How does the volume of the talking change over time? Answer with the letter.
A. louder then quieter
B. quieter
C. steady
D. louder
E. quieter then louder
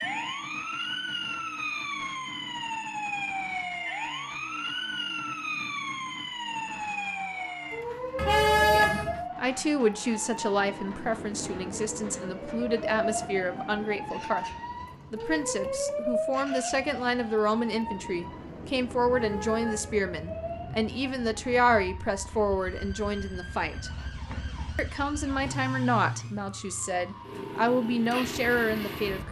C.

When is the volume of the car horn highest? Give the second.
9 s.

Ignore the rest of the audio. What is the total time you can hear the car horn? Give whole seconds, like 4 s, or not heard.
3 s.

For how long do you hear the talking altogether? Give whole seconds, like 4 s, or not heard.
19 s.